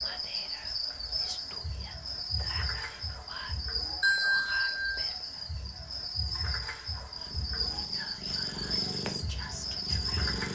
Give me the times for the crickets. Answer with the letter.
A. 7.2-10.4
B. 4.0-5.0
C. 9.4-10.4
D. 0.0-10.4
D.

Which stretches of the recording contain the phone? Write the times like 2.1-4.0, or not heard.
4.0-5.0.